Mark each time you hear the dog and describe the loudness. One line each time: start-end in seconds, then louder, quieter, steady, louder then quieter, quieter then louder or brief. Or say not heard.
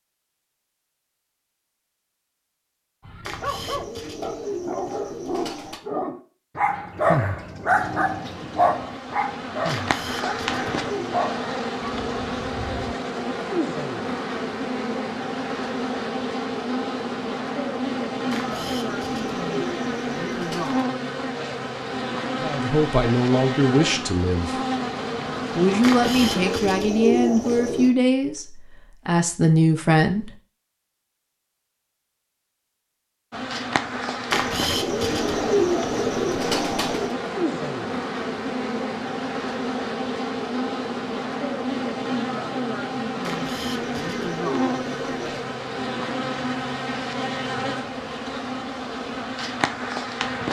3.0-12.9 louder then quieter.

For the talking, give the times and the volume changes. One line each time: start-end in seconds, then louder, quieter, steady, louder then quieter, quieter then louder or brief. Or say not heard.
22.4-24.6 brief
25.6-30.3 quieter then louder.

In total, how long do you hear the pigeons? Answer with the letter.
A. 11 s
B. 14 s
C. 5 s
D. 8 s
B.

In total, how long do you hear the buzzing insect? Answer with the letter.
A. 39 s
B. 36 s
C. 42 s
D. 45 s
B.